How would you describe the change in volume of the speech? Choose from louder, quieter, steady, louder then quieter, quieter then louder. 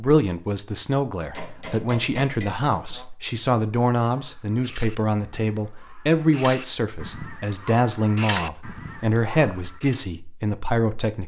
steady.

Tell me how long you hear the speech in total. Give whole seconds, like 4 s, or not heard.
11 s.